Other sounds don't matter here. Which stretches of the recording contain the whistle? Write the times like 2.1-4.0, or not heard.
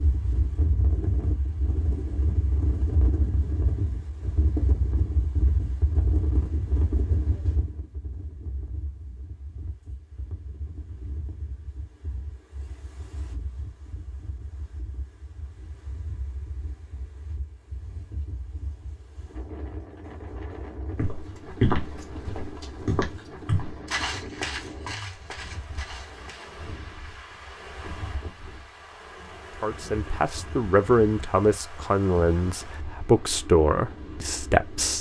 not heard.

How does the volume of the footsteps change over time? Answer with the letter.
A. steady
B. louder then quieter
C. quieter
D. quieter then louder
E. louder
C.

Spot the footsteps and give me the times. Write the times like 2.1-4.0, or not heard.
20.9-26.5.